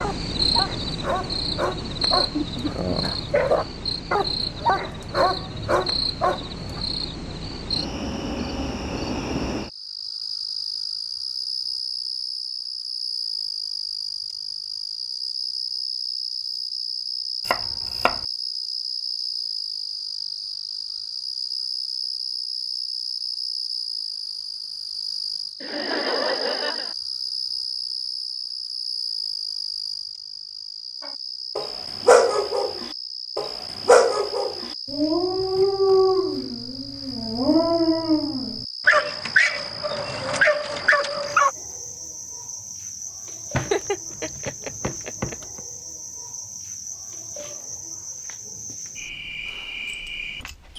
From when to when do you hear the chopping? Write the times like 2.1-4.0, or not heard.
17.4-18.2, 43.5-45.6.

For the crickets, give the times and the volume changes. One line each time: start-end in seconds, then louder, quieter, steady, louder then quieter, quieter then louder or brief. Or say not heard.
0.0-50.7 quieter.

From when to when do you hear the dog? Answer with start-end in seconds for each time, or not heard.
0.0-6.8, 31.0-41.5.